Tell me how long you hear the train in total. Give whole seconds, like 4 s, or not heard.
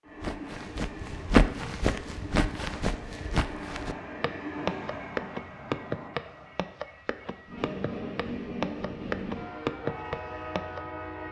11 s.